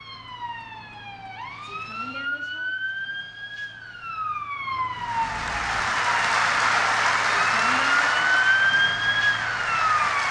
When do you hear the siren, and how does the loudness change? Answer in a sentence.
The siren can be heard from 0.0 to 10.2 s, getting louder.